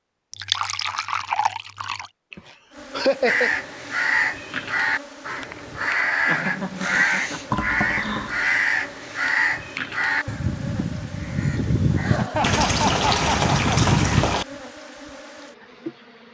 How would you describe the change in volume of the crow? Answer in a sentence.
The volume of the crow stays about the same.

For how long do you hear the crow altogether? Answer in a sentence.
The crow can be heard for 11 seconds in total.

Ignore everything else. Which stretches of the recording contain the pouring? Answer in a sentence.
The pouring can be heard from 0.3 to 2.1 s, from 7.5 to 8.8 s and from 12.4 to 14.4 s.